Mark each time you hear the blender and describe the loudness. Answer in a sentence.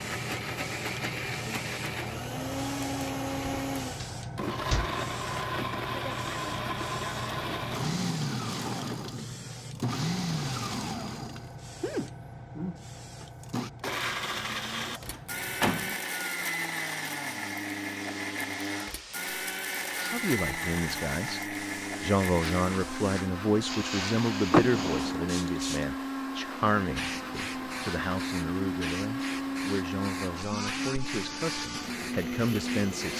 The blender can be heard from 0.0 to 33.1 s, at a steady volume.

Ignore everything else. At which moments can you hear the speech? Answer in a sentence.
You can hear the speech from 20.1 to 33.1 s.